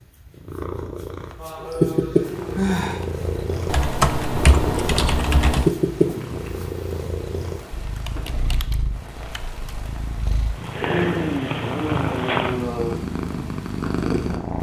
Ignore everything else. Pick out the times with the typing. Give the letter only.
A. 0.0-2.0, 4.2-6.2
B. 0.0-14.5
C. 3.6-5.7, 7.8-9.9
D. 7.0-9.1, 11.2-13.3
C.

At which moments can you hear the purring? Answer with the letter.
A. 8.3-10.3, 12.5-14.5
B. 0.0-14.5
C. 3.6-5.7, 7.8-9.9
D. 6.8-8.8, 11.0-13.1
B.